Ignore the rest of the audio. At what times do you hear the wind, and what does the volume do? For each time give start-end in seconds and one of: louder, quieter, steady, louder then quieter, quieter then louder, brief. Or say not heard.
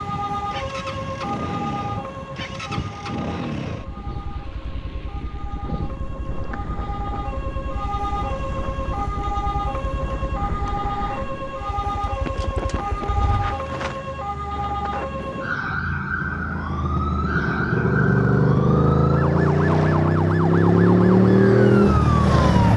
0.0-15.8 steady.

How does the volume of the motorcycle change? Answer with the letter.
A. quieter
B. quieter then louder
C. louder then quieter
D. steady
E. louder
B.